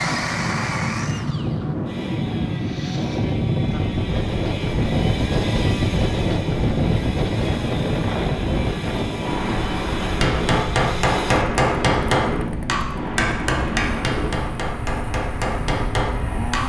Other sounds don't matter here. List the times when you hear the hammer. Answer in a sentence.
You can hear the hammer from 10.2 to 16.6 s.